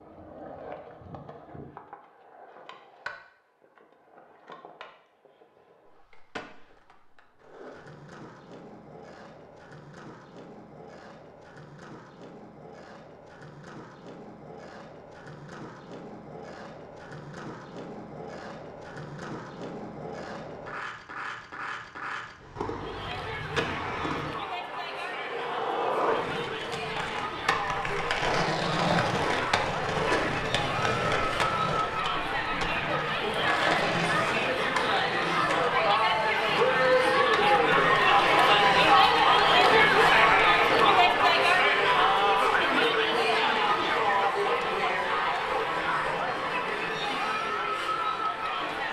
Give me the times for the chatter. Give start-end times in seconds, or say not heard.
22.7-48.8.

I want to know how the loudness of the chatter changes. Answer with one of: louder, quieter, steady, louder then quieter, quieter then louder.
louder then quieter.